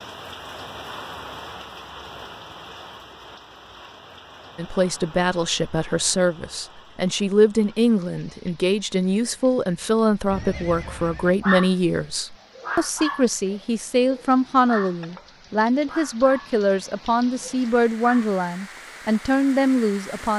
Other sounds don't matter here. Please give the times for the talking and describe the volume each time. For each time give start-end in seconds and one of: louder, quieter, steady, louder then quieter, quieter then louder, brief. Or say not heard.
4.5-20.3 steady.